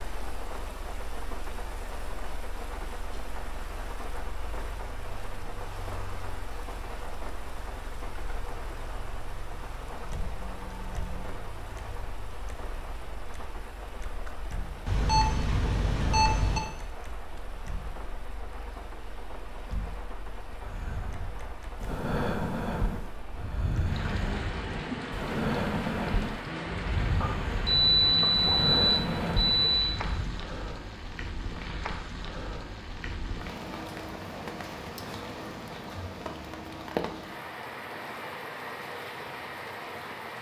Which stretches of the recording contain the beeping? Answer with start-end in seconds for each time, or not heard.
14.8-16.6, 27.2-29.8.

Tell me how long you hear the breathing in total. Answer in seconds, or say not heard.
10 s.